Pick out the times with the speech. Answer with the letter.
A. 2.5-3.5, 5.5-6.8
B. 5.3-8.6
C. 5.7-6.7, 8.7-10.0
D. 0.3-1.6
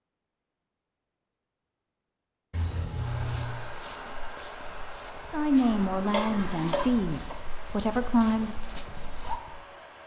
B.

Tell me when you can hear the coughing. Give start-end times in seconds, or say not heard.
6.1-7.3.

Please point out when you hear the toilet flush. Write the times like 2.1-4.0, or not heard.
2.5-3.5, 5.5-6.8.